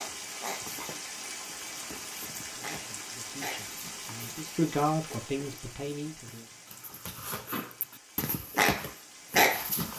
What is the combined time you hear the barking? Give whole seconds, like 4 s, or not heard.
9 s.